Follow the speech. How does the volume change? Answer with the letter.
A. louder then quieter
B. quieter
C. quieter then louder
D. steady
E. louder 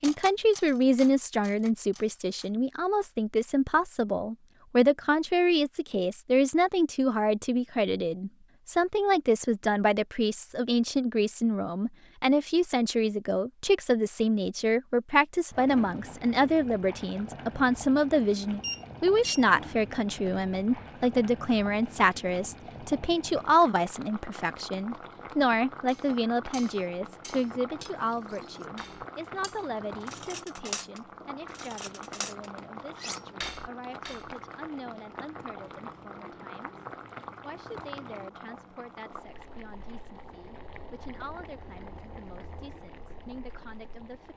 B.